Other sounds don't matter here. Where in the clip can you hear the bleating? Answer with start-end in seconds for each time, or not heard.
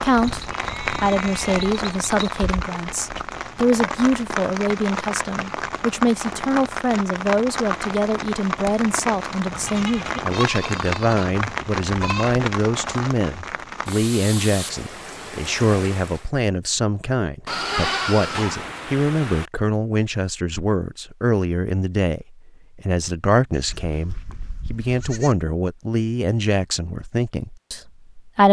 0.1-2.3, 9.5-12.3, 17.4-19.5, 23.5-25.4.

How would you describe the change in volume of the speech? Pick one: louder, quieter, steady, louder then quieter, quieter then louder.
steady.